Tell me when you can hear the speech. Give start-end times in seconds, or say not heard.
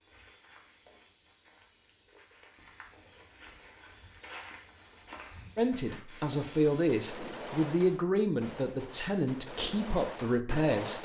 5.5-11.0.